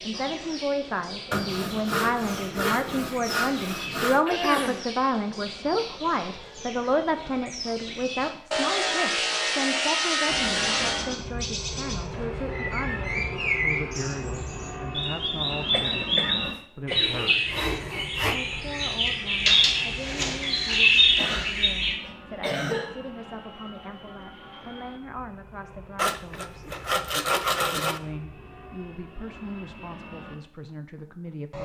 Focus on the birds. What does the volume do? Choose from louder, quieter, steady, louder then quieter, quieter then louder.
louder.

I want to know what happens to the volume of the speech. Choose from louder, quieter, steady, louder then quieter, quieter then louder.
quieter.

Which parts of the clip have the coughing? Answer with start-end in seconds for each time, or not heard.
4.2-4.8, 15.7-17.6, 21.1-23.0.